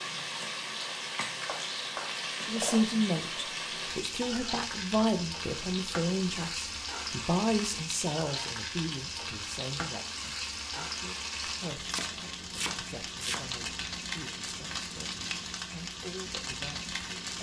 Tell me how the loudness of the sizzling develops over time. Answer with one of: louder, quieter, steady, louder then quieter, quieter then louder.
steady.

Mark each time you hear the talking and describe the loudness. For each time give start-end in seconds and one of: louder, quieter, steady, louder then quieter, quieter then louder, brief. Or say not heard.
2.4-17.3 quieter.